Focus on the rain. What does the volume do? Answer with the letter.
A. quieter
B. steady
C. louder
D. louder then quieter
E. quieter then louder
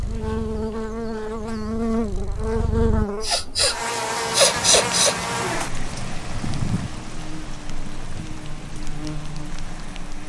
A.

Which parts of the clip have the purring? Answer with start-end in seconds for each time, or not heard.
0.0-3.0.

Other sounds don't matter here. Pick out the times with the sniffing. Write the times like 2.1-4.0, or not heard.
3.2-5.2.